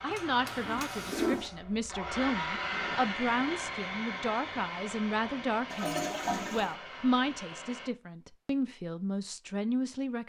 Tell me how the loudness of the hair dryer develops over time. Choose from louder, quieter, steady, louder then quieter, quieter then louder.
louder then quieter.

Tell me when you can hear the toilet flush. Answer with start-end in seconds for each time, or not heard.
0.1-1.5, 5.7-6.8.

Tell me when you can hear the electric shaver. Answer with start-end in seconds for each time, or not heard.
not heard.